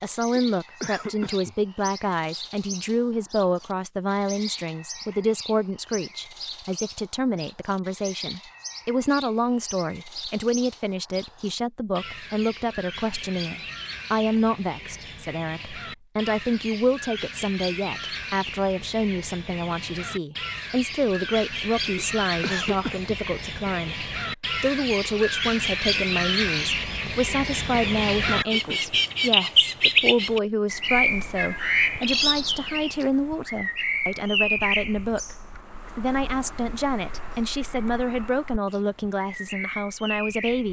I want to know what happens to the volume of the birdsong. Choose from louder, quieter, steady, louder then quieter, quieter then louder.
louder then quieter.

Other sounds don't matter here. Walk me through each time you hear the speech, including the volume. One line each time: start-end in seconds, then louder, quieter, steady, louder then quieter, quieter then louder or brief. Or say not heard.
0.0-40.6 steady.